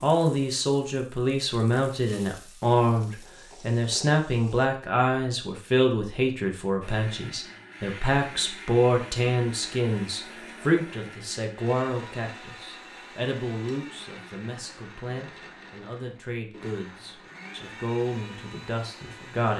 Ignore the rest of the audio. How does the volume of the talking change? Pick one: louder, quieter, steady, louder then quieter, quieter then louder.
quieter.